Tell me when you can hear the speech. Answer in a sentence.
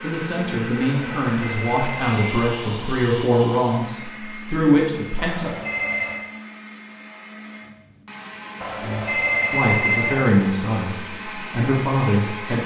You can hear the speech from 0.0 to 5.5 s and from 8.8 to 12.6 s.